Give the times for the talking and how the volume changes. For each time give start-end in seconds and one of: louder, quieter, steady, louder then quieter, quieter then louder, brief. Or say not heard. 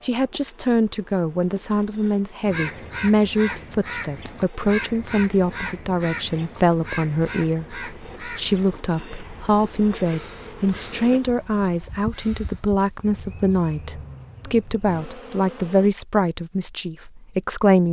0.0-17.8 steady.